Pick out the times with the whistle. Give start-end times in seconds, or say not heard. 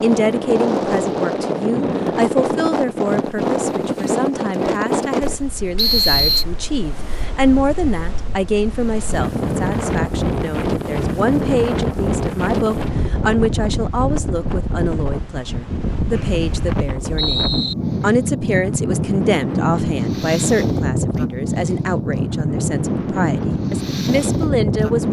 5.8-6.5, 16.1-17.8.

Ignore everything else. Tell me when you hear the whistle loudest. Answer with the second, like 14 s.
6 s.